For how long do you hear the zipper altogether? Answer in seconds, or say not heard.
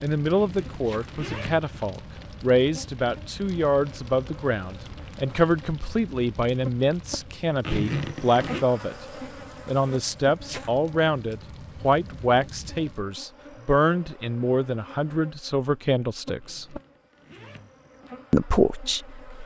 4 s.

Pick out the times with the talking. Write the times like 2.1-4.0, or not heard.
0.0-9.1, 9.7-16.8, 18.3-19.4.